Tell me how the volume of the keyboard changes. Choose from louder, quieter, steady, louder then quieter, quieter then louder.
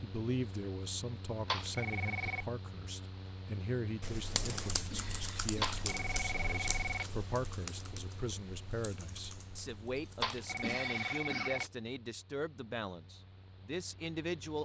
quieter.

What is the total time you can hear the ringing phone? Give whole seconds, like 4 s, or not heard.
4 s.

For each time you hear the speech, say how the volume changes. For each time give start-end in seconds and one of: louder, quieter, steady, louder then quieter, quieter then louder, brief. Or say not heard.
0.0-14.6 steady.